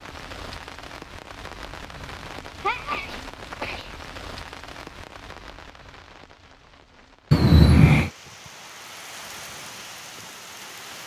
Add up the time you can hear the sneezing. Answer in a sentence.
The sneezing can be heard for 3 seconds in total.